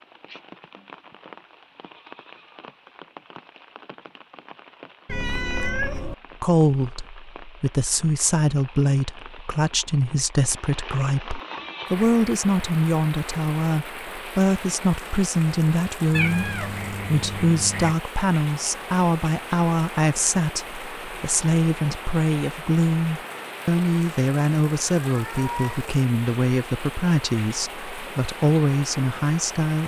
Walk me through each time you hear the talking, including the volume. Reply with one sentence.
The talking can be heard from 6.4 to 29.8 s, at a steady volume.